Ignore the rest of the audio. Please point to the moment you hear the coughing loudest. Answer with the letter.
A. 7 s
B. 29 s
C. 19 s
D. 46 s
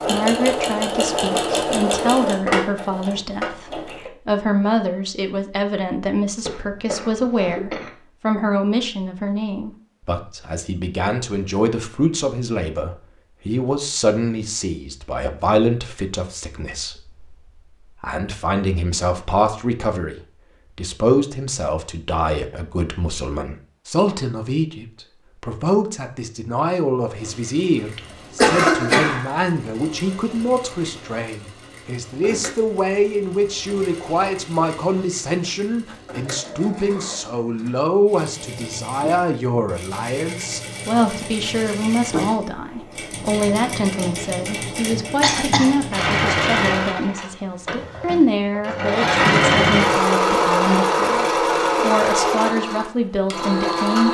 B.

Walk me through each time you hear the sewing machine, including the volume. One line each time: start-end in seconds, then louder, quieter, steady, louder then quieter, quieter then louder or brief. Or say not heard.
0.0-4.1 quieter
27.1-54.1 louder.